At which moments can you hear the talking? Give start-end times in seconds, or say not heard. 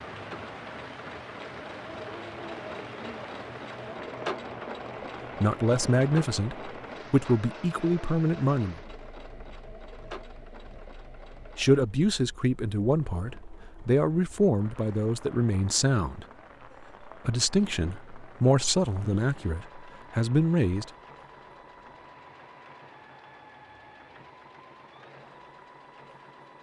5.4-8.8, 11.6-16.2, 17.2-20.9.